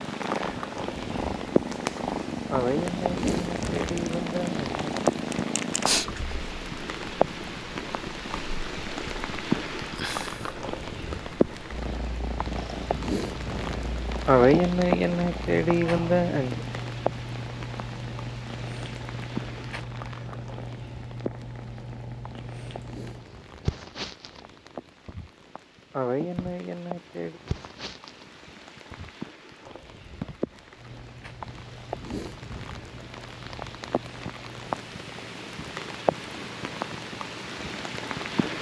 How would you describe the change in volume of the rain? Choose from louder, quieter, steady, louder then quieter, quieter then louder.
quieter then louder.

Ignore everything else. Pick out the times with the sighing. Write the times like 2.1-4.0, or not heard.
2.5-4.8, 14.2-16.6, 25.9-27.4.